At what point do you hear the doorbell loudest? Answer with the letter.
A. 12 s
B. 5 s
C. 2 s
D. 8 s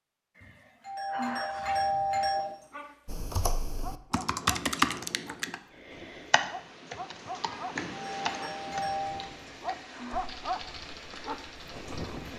C.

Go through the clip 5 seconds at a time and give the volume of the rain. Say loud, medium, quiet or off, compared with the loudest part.
off, loud, loud.